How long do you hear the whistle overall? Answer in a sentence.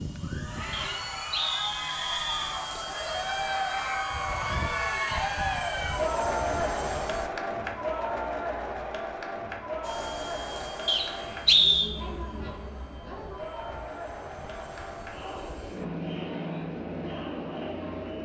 The whistle can be heard for 3 seconds in total.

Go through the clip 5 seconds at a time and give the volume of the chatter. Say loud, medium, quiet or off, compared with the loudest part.
loud, loud, medium, medium.